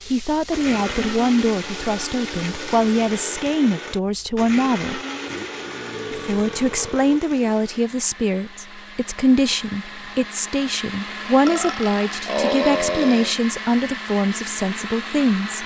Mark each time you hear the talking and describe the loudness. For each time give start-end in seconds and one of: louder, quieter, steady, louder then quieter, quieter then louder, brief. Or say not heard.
0.1-5.0 steady
6.1-15.6 steady.